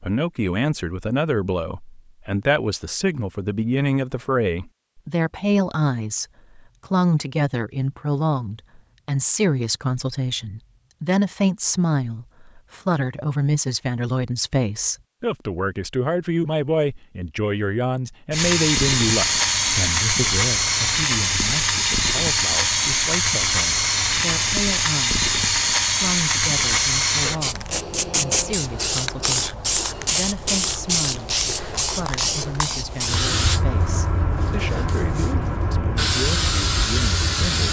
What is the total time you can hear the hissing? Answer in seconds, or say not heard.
19 s.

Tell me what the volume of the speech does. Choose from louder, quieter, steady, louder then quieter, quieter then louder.
quieter.